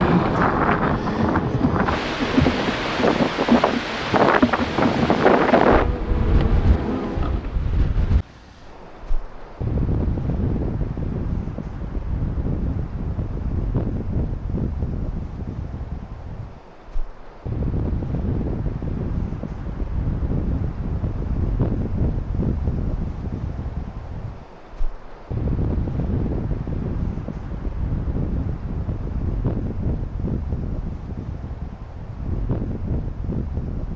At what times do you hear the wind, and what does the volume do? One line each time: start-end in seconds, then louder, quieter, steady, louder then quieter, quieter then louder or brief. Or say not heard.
0.0-33.9 quieter.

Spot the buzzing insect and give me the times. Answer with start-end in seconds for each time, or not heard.
0.0-7.5.